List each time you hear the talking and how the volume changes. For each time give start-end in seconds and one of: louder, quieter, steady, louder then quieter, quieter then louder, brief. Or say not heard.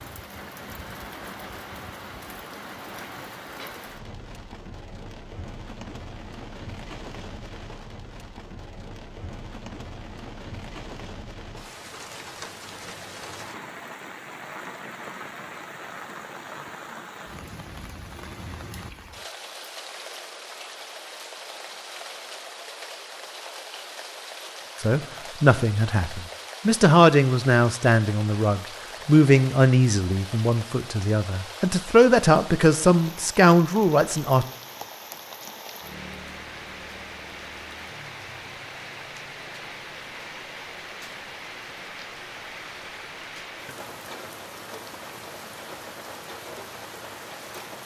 24.8-34.5 steady.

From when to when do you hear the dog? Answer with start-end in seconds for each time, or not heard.
not heard.